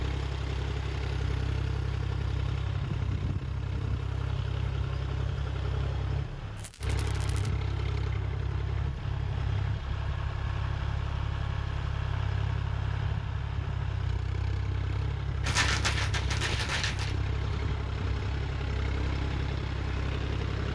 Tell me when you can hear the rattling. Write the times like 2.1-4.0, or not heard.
6.5-7.5, 15.4-17.1.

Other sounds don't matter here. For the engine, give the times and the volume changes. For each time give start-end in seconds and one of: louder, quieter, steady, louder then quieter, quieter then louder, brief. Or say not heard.
0.0-20.7 steady.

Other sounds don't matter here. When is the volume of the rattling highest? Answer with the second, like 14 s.
16 s.